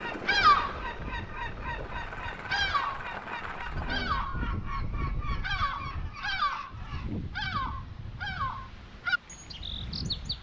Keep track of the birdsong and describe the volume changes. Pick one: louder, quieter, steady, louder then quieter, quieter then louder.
quieter.